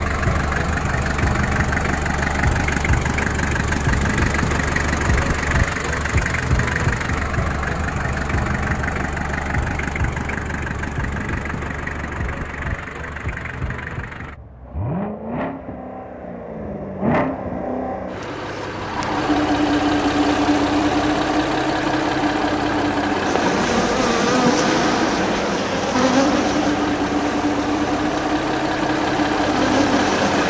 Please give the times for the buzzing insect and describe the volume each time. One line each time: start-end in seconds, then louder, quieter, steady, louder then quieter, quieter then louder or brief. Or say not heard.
23.1-30.4 quieter then louder.